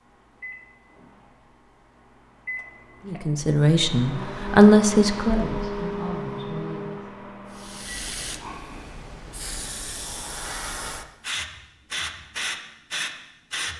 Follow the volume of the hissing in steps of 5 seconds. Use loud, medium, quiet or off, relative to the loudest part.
off, medium, loud.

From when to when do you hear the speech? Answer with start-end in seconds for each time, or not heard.
3.0-7.0.